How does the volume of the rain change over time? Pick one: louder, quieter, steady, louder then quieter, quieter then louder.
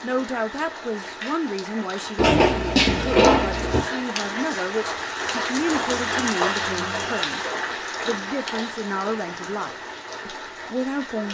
louder then quieter.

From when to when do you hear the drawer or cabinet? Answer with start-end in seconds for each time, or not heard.
2.1-3.9, 6.0-7.3.